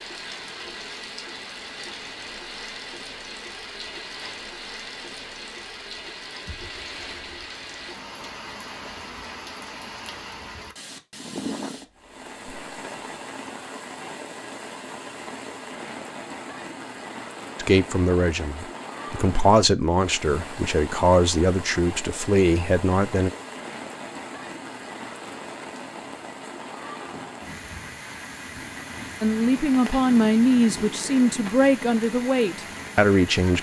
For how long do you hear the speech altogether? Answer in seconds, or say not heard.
10 s.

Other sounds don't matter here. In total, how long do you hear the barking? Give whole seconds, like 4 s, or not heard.
not heard.